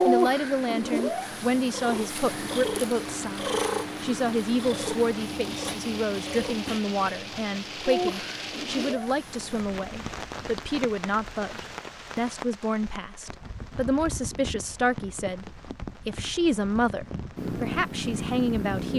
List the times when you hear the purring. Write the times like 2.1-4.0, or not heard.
0.0-9.7, 17.4-18.9.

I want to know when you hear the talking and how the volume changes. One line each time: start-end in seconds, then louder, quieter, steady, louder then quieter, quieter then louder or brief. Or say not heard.
0.1-18.9 steady.